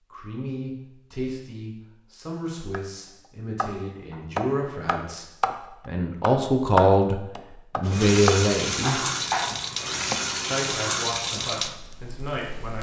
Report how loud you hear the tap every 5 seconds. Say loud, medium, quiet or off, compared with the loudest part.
off, loud, loud.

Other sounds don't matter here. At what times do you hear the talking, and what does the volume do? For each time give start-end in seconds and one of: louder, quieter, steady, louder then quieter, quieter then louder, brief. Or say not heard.
0.1-9.0 louder
10.5-12.7 brief.